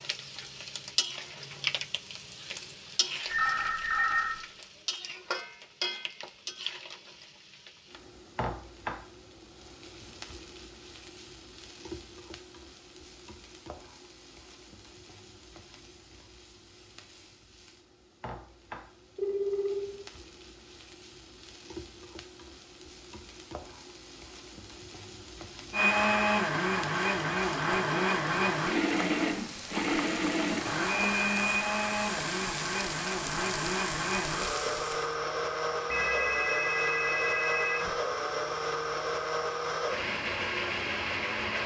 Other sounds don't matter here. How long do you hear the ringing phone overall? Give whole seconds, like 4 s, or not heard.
4 s.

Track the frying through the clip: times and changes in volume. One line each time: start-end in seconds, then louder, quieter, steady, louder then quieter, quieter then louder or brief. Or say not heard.
0.0-35.1 quieter then louder.